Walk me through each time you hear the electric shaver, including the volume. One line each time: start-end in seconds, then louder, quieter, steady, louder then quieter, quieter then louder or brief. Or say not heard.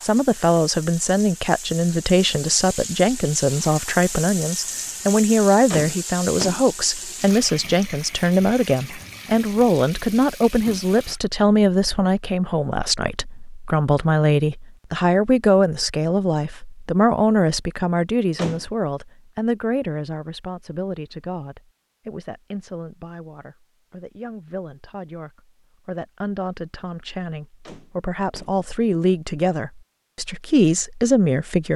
not heard.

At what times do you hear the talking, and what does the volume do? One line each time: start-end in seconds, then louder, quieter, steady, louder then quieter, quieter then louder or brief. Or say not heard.
0.0-31.7 quieter then louder.